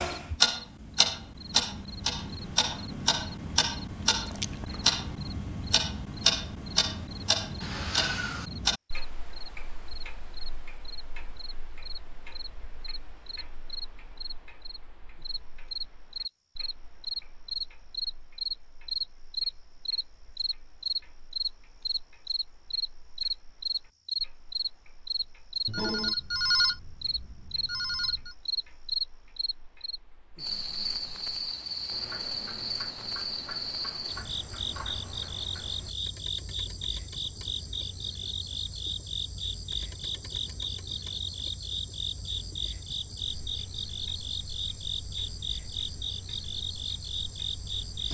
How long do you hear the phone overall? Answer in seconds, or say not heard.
3 s.